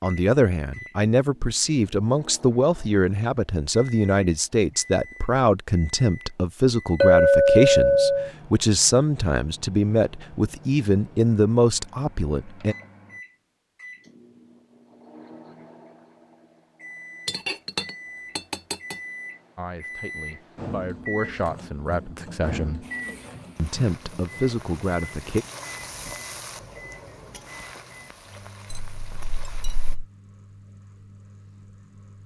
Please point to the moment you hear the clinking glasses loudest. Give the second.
7 s.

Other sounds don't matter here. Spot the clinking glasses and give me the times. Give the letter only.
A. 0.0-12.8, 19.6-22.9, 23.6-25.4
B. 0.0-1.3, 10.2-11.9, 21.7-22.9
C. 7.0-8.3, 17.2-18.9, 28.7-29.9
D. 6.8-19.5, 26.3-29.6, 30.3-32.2
C.